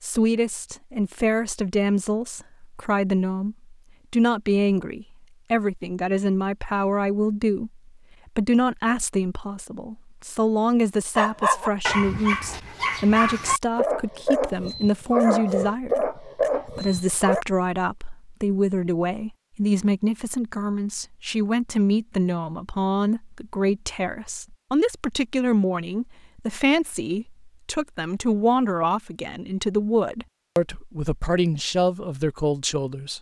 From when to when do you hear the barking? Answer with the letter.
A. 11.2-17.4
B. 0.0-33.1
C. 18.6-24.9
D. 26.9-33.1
A.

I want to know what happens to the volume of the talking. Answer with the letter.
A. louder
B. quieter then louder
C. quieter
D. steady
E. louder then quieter
D.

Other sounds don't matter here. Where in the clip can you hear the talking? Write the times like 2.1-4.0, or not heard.
0.0-33.1.